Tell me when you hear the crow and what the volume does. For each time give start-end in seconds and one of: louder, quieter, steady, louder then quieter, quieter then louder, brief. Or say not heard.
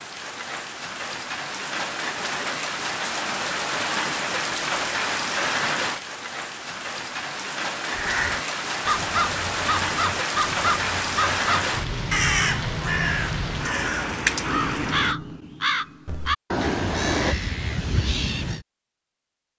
7.9-18.6 steady.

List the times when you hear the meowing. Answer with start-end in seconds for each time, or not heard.
16.5-17.4.